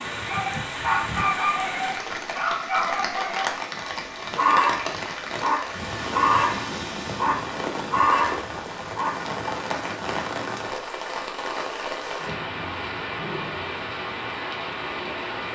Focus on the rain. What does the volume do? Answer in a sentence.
The loudness of the rain stays about the same.